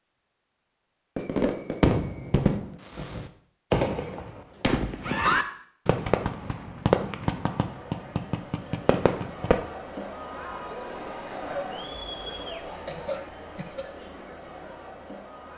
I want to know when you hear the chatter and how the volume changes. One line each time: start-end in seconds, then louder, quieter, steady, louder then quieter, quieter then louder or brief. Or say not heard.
7.7-15.5 louder then quieter.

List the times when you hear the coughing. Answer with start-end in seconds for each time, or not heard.
12.7-13.8.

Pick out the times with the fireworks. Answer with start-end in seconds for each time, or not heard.
1.1-9.6.